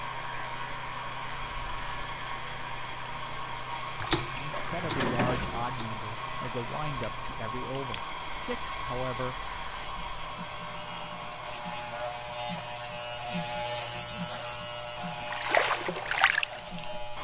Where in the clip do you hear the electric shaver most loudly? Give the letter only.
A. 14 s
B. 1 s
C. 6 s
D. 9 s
A.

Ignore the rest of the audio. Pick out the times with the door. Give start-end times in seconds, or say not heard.
4.5-5.7.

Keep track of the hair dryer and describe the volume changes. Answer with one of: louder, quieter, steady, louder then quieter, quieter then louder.
quieter.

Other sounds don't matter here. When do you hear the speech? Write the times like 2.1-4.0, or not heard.
4.3-9.4.